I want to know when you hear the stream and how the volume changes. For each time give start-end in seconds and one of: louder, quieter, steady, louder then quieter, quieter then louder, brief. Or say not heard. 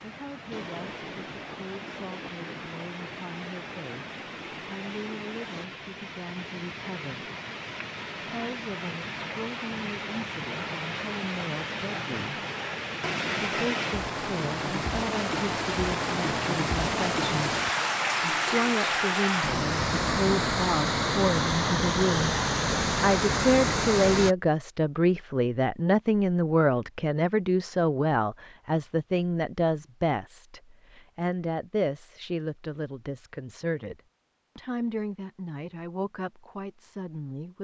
0.0-24.4 louder.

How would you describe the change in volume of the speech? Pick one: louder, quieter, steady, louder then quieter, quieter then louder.
louder then quieter.